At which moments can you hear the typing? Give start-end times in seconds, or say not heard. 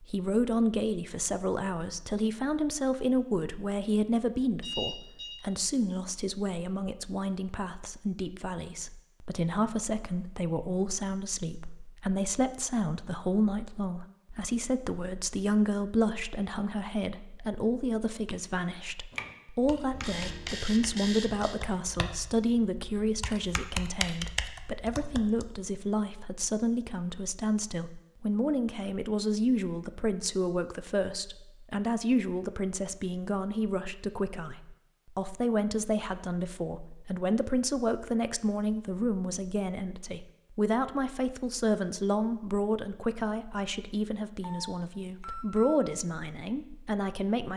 19.1-25.4.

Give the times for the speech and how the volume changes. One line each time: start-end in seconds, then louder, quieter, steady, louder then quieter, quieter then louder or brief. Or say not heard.
0.0-47.5 steady.